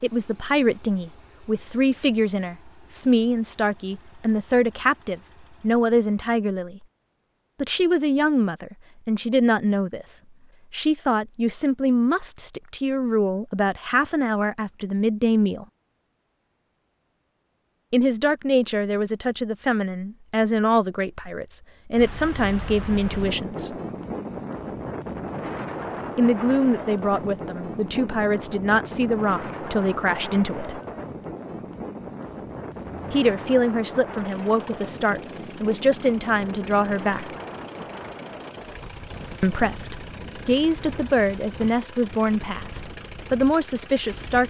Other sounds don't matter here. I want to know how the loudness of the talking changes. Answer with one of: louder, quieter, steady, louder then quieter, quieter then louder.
steady.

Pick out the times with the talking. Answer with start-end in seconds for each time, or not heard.
0.0-6.8, 7.6-15.7, 17.9-23.8, 26.1-30.8, 33.1-37.4, 39.4-44.4.